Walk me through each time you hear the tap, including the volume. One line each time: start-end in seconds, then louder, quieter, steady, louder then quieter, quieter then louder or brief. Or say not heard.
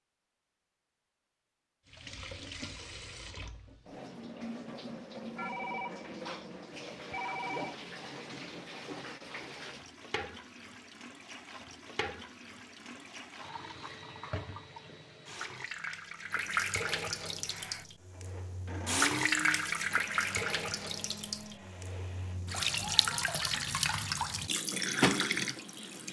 1.9-26.0 louder.